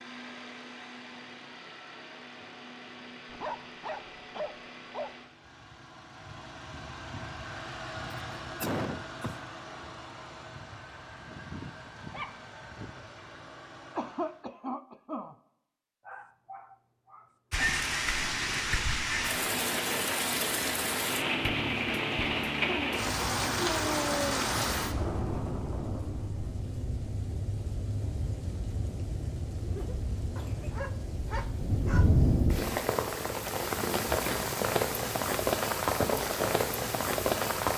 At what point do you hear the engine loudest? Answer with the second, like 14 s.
8 s.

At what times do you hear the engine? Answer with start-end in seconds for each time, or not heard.
0.0-14.4.